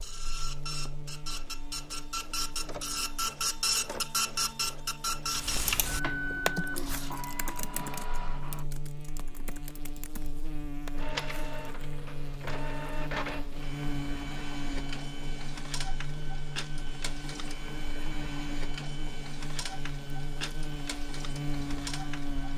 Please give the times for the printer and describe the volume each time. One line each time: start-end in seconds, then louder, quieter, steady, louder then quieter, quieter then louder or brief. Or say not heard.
0.0-8.7 louder then quieter
10.9-22.5 steady.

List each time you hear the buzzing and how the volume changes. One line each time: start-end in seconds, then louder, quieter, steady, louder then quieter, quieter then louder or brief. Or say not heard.
0.0-22.5 louder.